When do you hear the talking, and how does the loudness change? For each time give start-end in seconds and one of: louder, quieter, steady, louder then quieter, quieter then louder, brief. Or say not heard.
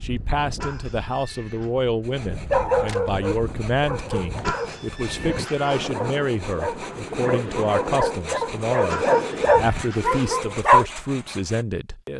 0.0-12.1 steady.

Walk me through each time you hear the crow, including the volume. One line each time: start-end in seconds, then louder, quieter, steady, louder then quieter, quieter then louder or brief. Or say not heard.
not heard.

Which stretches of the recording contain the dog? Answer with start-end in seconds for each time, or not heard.
2.5-10.8.